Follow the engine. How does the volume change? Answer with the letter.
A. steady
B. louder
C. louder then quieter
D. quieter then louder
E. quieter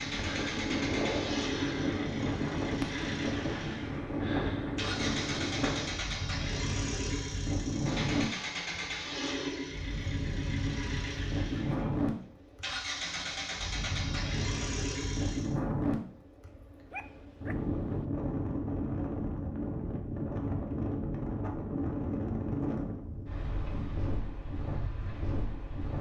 A.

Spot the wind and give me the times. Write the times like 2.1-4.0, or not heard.
0.0-25.9.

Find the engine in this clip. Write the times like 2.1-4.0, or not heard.
0.0-15.6.